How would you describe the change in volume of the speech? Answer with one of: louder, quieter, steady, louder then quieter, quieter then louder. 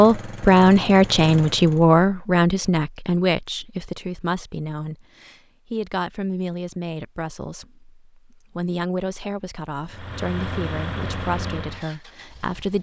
quieter.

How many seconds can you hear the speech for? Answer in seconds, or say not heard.
13 s.